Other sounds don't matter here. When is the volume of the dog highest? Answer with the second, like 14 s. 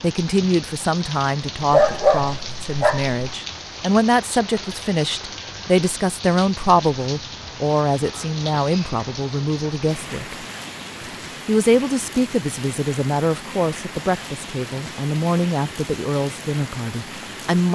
2 s.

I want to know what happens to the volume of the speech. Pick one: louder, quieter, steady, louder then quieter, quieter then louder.
steady.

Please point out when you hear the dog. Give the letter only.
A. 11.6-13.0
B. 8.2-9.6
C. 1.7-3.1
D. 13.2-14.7
C.